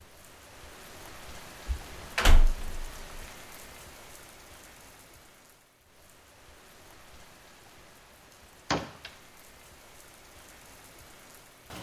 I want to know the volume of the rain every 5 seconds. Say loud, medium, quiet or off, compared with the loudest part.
loud, medium, loud.